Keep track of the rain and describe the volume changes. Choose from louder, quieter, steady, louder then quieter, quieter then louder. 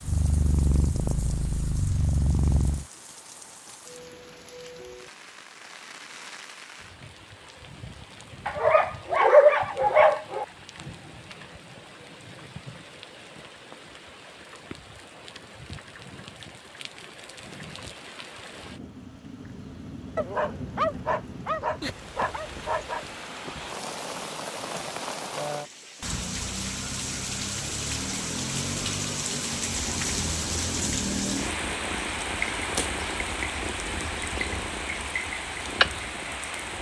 louder.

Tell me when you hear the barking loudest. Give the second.
9 s.